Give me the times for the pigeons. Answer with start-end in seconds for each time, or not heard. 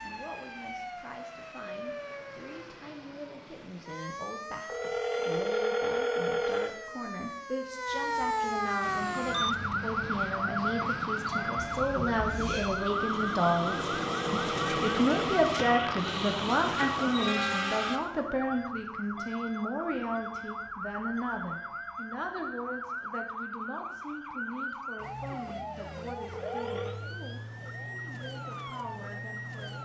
not heard.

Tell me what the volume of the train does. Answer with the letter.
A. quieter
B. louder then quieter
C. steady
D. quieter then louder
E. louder
E.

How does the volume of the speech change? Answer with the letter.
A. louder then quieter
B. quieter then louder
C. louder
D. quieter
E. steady
A.